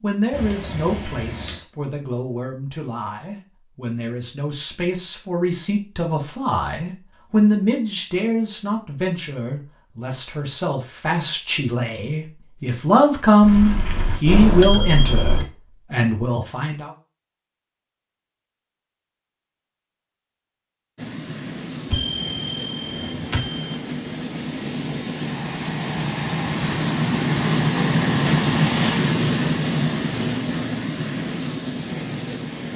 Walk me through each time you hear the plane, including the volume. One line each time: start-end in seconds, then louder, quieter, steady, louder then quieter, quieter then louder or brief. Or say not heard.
20.9-32.7 louder then quieter.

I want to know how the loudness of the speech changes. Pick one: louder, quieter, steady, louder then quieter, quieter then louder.
louder.